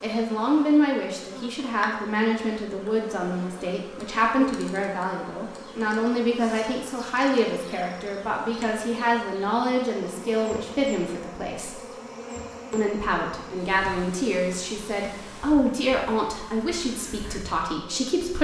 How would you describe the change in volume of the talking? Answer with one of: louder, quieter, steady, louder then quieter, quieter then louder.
steady.